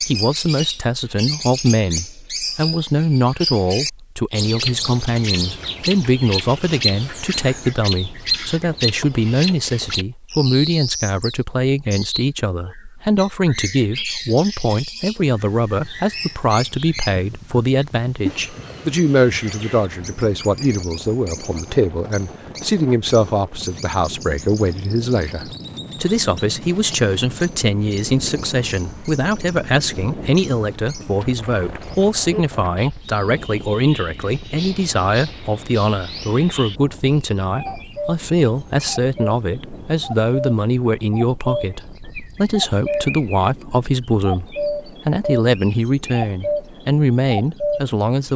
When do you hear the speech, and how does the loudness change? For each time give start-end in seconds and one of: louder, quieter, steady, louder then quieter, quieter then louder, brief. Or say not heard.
0.0-48.3 steady.